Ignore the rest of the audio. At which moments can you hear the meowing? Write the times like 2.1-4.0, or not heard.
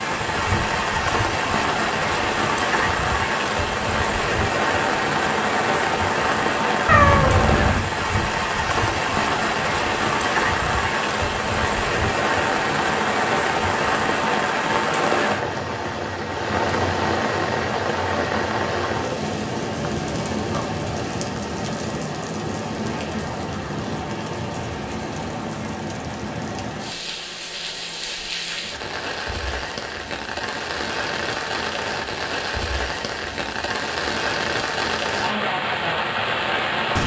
6.8-7.9.